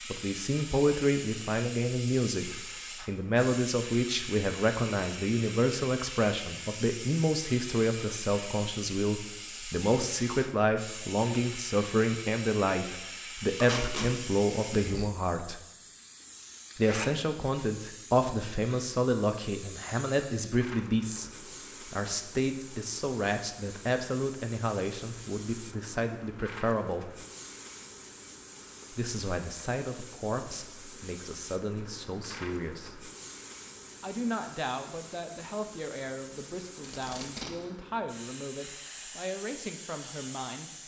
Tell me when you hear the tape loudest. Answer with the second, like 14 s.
14 s.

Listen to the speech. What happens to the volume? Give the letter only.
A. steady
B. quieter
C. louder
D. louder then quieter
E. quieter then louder
B.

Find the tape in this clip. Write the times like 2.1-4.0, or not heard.
13.6-14.1, 36.8-37.5.